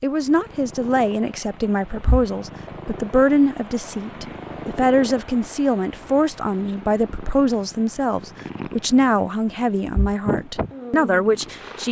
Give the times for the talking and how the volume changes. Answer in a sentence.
You can hear the talking from 0.0 to 11.8 s, at a steady volume.